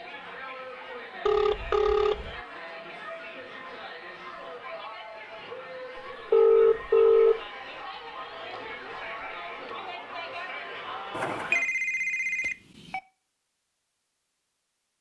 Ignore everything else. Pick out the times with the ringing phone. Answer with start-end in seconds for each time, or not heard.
1.2-2.4, 6.3-7.3, 11.1-13.0.